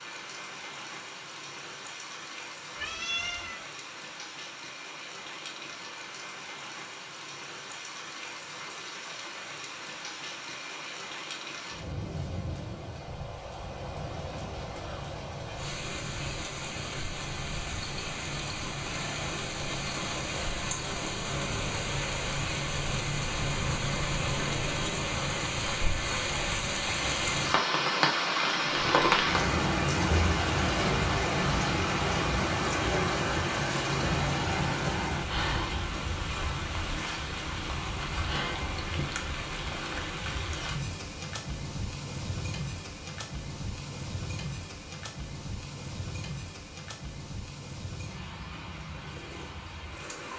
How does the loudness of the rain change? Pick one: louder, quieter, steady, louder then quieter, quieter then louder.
louder then quieter.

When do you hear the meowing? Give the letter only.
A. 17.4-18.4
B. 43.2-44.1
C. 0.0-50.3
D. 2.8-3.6
D.